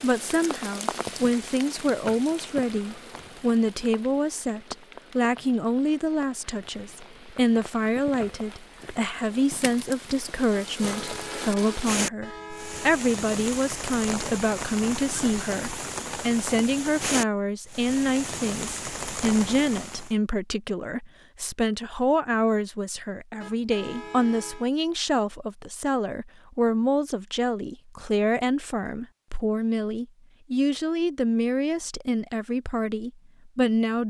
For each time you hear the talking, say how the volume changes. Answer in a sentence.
You can hear the talking from 0.0 to 34.0 s, at a steady volume.